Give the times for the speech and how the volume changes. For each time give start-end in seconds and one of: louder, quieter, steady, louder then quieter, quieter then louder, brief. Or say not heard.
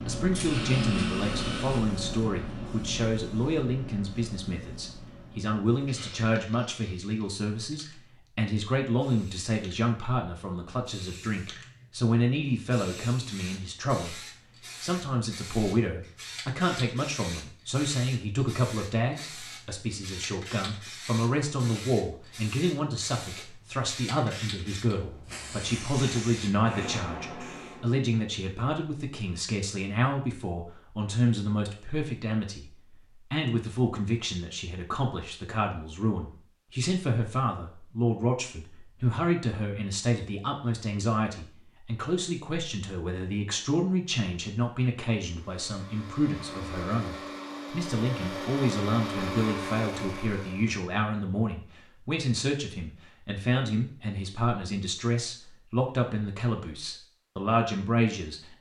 0.0-58.5 steady.